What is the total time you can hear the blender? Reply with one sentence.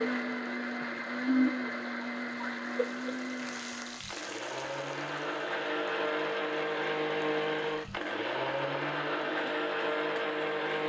The blender can be heard for 11 seconds in total.